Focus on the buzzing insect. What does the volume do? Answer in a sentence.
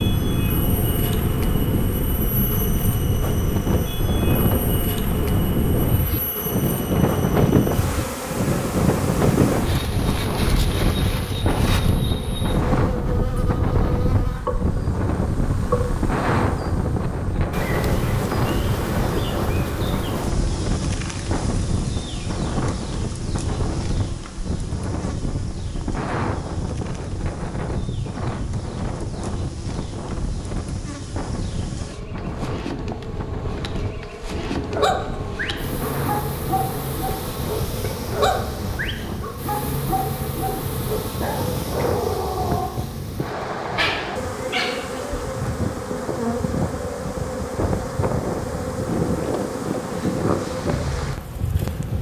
The volume of the buzzing insect goes down, then up.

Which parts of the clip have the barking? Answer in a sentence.
You can hear the barking from 34.7 to 42.9 s and from 43.7 to 45.2 s.